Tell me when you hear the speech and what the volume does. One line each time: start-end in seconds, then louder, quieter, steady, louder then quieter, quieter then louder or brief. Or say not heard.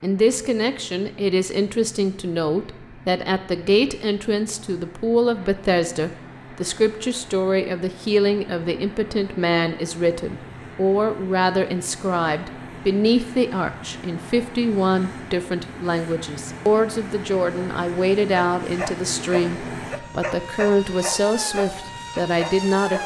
0.0-23.0 steady.